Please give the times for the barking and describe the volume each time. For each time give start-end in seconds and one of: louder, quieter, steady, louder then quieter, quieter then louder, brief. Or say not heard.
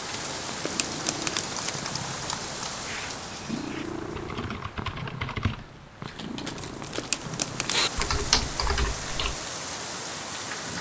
not heard.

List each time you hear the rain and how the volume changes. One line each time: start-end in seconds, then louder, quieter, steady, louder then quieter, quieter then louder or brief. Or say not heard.
0.0-10.7 quieter then louder.